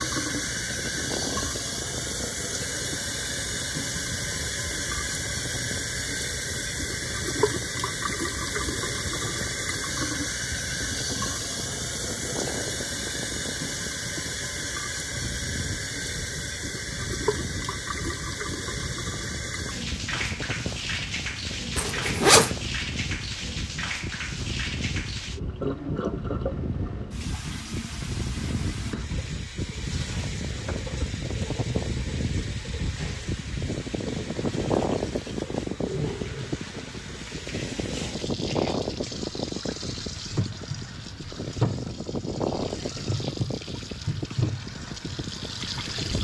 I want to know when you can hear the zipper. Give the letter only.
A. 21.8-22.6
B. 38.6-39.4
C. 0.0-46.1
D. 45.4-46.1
A.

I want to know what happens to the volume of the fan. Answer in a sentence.
The volume of the fan goes up.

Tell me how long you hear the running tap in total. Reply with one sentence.
You can hear the running tap for 46 seconds altogether.